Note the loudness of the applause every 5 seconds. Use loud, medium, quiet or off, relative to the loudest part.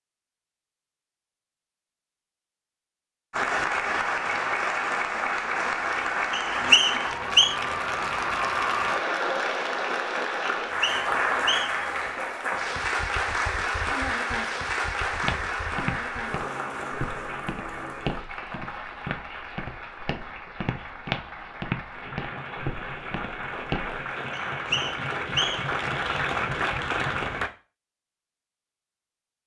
loud, loud, loud, medium, medium, loud.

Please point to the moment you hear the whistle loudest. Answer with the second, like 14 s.
7 s.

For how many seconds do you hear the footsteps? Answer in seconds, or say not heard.
9 s.